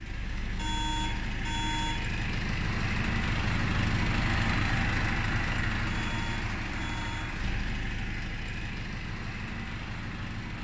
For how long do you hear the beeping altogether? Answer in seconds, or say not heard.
3 s.